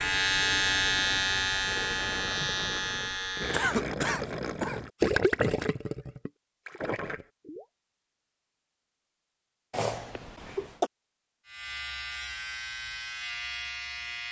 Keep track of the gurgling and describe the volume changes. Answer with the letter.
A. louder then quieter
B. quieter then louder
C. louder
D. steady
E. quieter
A.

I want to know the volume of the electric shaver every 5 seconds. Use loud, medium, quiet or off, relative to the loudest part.
loud, off, medium.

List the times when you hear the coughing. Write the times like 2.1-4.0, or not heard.
3.5-4.8, 9.7-10.9.